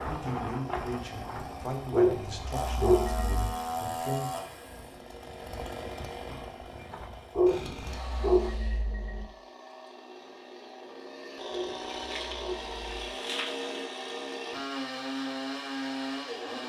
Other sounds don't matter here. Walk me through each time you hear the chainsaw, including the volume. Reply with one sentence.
You can hear the chainsaw from 0.0 to 16.6 s, getting quieter then louder.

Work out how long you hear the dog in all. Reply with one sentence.
You can hear the dog for 5 seconds altogether.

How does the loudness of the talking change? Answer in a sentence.
The volume of the talking goes down.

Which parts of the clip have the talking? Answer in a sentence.
The talking can be heard from 0.0 to 4.4 s.